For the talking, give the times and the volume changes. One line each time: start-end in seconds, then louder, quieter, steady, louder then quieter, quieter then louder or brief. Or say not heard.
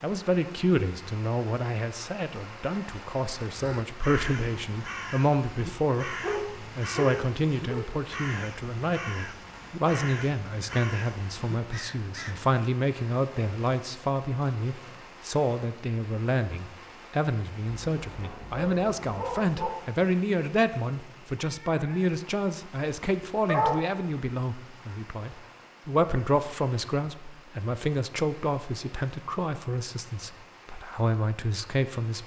0.0-32.2 steady.